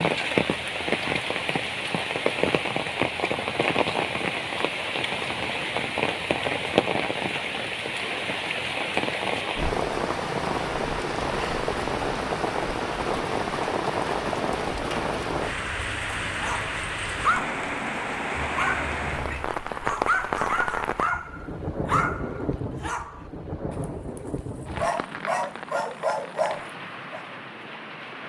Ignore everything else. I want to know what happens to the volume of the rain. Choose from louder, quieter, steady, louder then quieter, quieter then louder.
quieter.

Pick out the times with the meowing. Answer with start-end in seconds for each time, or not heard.
18.3-19.5.